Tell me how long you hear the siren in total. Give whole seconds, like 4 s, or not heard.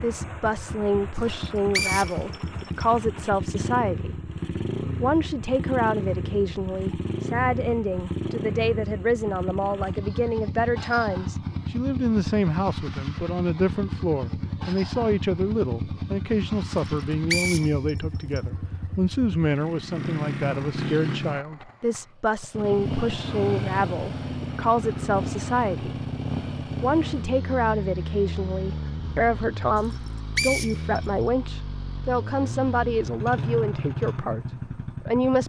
not heard.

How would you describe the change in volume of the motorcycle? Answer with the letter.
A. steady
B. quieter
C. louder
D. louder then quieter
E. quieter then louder
A.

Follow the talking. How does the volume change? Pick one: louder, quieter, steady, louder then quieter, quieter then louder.
steady.